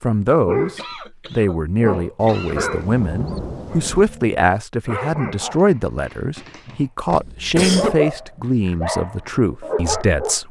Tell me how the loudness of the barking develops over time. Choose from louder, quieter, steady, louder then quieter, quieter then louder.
quieter then louder.